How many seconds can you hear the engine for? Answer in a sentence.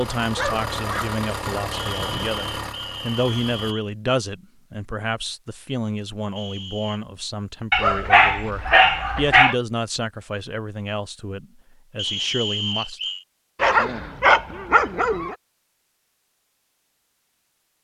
You can hear the engine for 4 seconds altogether.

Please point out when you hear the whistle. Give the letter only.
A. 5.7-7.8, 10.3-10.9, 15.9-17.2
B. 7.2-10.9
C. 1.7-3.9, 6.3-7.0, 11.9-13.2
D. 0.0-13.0
C.